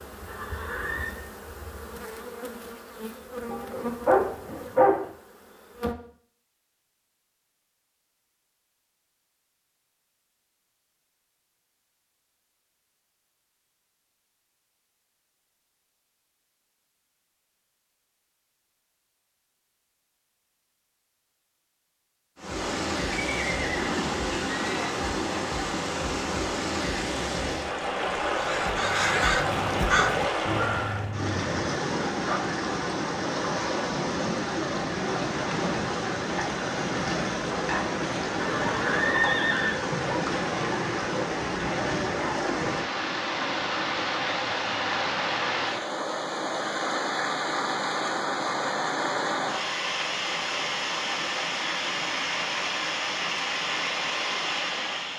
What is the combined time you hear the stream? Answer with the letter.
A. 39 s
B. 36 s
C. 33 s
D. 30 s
C.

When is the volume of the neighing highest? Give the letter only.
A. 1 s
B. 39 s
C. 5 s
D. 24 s
B.